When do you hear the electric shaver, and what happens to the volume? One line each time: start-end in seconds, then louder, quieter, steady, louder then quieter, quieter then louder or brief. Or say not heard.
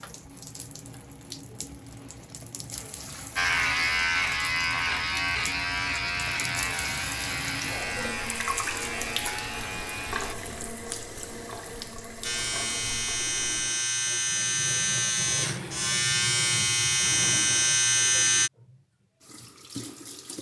3.4-10.3 quieter
12.2-18.5 louder.